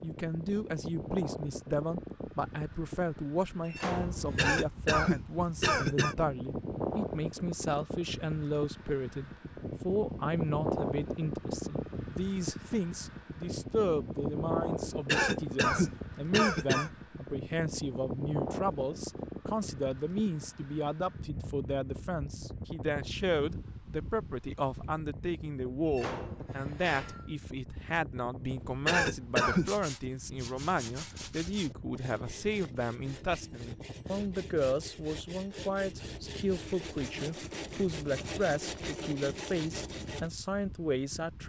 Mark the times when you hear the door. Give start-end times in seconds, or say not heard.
3.6-4.5, 25.9-27.3.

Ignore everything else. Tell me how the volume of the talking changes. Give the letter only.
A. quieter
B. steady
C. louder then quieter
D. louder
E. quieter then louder
B.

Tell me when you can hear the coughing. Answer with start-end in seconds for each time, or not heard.
4.3-6.2, 15.1-16.9, 28.9-29.7.